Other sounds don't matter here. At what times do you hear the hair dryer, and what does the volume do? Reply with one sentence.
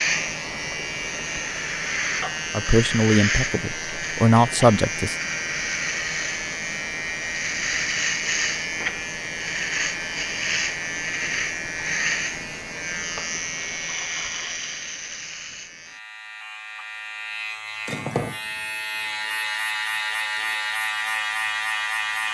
You can't hear the hair dryer here.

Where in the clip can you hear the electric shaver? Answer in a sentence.
The electric shaver can be heard from 0.0 to 22.2 s.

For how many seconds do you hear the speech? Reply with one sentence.
The speech can be heard for 3 seconds in total.